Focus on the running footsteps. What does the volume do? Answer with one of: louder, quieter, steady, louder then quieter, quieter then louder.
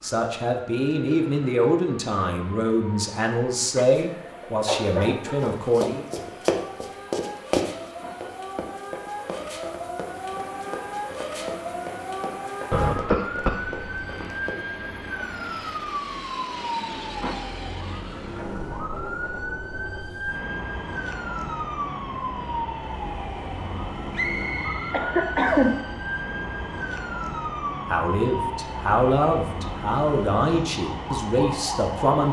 quieter.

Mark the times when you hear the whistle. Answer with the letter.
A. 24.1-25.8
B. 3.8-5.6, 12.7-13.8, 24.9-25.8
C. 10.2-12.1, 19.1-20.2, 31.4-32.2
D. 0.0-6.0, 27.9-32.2
A.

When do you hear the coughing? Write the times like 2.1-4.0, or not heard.
3.8-5.6, 12.7-13.8, 24.9-25.8.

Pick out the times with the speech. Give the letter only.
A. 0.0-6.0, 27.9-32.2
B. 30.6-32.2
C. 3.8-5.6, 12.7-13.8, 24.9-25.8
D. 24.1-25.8
A.